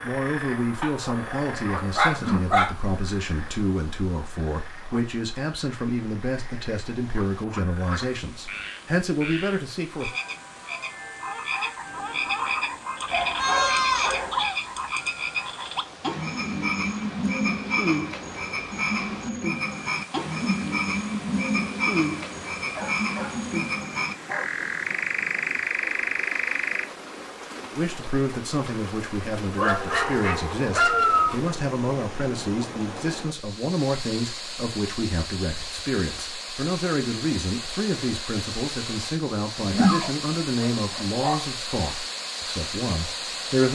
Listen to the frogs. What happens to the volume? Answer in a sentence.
The loudness of the frogs goes up.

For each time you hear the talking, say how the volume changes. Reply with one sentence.
You can hear the talking from 0.0 to 10.1 s, at a steady volume; and from 27.7 to 43.6 s, at a steady volume.